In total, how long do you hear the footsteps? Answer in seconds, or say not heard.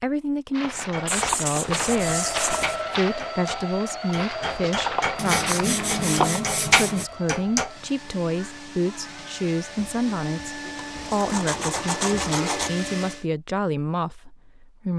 6 s.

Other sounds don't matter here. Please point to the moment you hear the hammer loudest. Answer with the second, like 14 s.
7 s.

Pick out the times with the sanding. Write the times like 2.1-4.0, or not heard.
1.1-2.8, 5.2-7.1, 10.8-12.7.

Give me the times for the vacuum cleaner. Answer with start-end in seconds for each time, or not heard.
1.8-13.2.